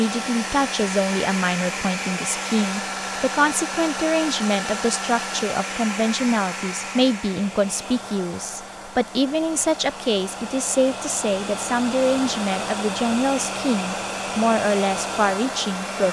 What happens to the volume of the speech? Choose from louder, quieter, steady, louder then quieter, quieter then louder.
steady.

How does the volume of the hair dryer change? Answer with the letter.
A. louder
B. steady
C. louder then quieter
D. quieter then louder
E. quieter
D.